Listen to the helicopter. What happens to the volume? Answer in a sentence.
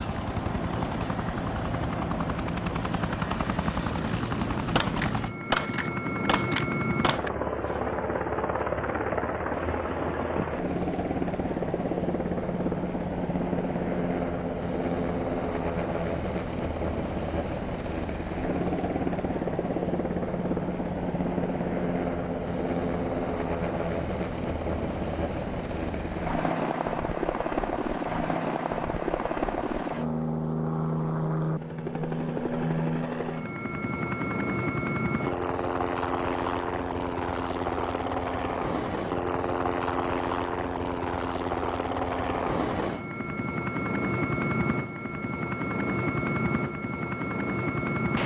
The loudness of the helicopter stays about the same.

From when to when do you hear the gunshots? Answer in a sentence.
You can hear the gunshots from 4.8 to 7.3 s.